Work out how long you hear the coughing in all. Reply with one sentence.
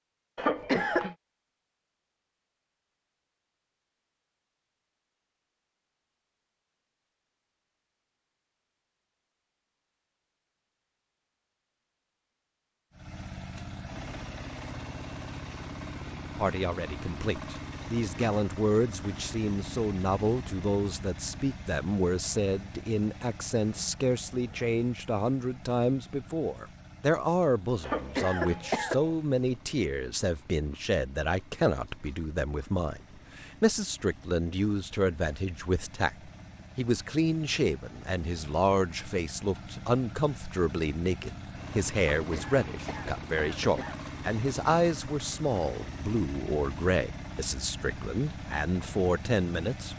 The coughing can be heard for 4 seconds in total.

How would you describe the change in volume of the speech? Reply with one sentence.
The volume of the speech stays about the same.